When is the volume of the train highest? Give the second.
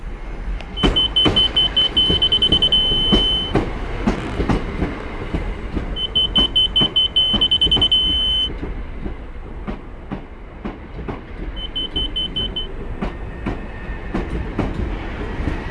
4 s.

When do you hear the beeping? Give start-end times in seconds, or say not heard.
0.8-3.5, 6.0-8.5, 11.6-12.7.